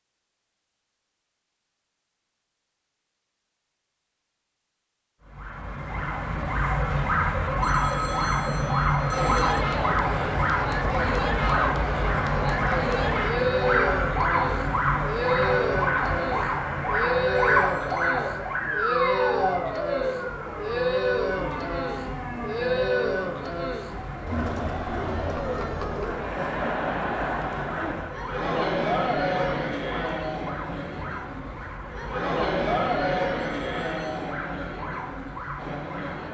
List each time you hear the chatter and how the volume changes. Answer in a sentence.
The chatter can be heard from 9.1 to 36.2 s, at a steady volume.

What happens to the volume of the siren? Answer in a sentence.
The volume of the siren goes down.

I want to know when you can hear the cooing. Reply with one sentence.
You can't hear the cooing here.